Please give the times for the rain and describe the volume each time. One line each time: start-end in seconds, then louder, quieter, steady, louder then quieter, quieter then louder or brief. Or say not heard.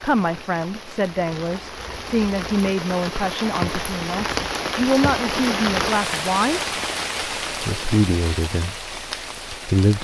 0.0-9.9 louder then quieter.